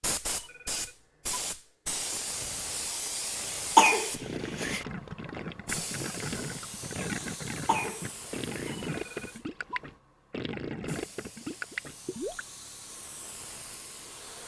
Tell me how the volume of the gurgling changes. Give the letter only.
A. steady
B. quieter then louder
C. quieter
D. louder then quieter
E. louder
A.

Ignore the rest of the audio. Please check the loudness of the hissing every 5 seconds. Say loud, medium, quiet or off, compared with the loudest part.
loud, medium, quiet.